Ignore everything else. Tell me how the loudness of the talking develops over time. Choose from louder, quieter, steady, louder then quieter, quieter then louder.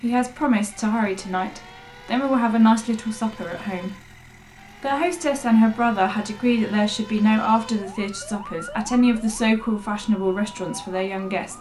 steady.